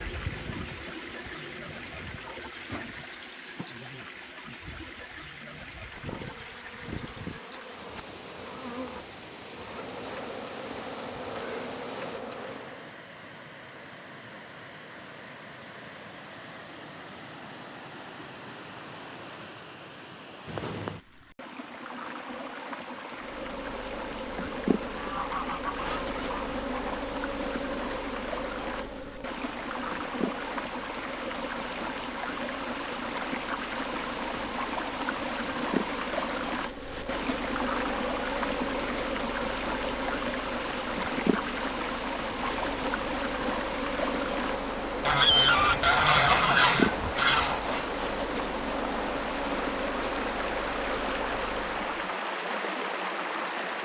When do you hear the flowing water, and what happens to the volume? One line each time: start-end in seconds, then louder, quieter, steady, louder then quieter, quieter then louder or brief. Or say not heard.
0.0-53.7 louder.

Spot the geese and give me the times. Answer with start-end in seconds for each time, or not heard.
5.8-7.4, 24.9-26.6, 45.0-47.9.